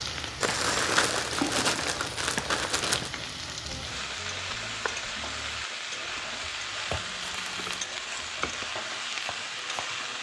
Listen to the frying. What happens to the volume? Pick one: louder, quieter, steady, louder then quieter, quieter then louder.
steady.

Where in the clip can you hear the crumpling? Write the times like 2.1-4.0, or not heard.
0.4-3.1, 7.0-7.9.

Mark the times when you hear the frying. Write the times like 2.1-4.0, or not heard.
0.0-10.1.